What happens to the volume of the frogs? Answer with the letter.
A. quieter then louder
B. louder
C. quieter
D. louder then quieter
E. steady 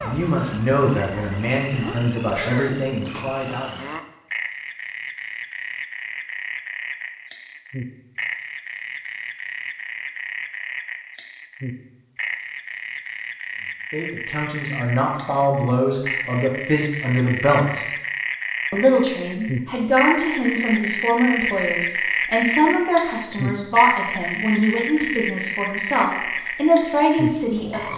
B.